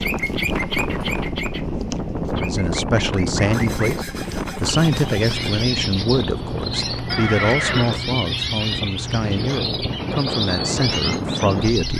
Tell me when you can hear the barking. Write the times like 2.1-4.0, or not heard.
not heard.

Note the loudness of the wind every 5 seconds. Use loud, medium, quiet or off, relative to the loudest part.
loud, medium, loud.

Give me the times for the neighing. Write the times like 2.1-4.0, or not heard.
7.1-8.1.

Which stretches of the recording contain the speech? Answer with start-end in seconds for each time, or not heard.
2.3-11.9.